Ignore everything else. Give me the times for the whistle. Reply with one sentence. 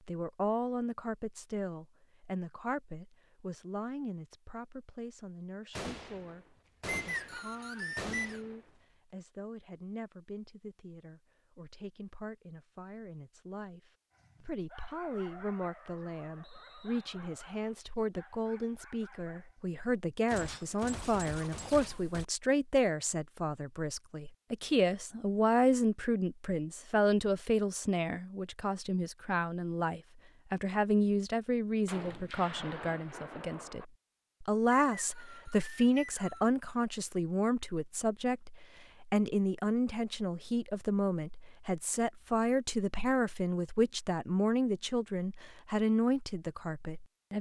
The whistle can be heard from 6.8 to 8.4 s, from 16.4 to 17.1 s and from 34.9 to 36.5 s.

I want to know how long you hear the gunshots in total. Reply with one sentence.
You can hear the gunshots for 7 seconds altogether.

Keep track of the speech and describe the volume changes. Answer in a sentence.
The volume of the speech goes up.